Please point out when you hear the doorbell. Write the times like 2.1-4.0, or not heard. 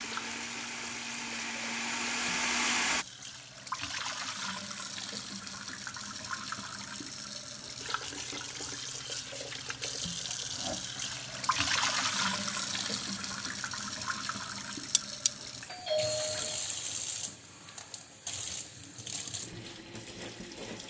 15.7-16.6.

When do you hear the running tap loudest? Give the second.
12 s.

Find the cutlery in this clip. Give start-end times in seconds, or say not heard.
14.9-15.3.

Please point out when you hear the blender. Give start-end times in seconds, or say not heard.
0.0-3.0.